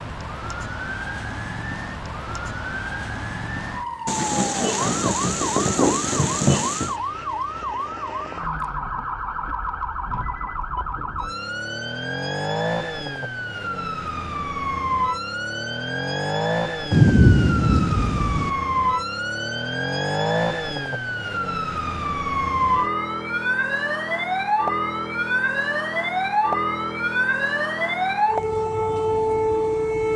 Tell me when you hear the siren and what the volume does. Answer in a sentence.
The siren can be heard from 0.0 to 30.1 s, getting louder.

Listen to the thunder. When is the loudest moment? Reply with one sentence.
The loudest moment of the thunder is at 17 seconds.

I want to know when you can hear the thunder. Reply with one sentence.
The thunder can be heard from 4.0 to 7.0 s and from 16.9 to 18.5 s.